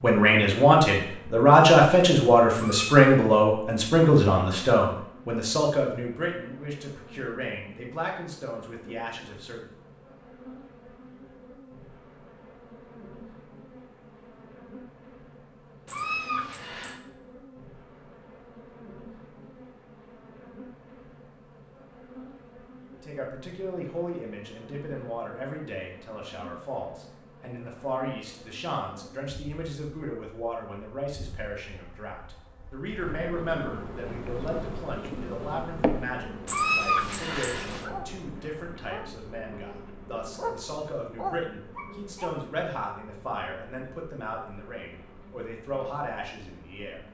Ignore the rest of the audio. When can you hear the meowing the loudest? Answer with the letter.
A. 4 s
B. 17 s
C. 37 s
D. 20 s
C.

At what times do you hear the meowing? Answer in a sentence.
The meowing can be heard from 2.5 to 3.1 s, from 15.8 to 17.0 s and from 36.5 to 37.9 s.